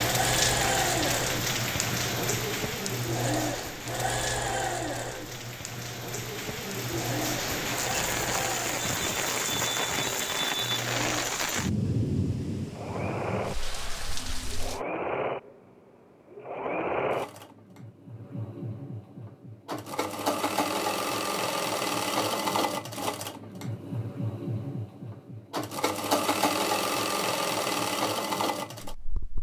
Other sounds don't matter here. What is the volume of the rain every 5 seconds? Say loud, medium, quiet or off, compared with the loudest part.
loud, loud, loud, off, off, off.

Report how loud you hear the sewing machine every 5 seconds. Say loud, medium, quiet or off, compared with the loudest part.
loud, medium, medium, medium, loud, loud.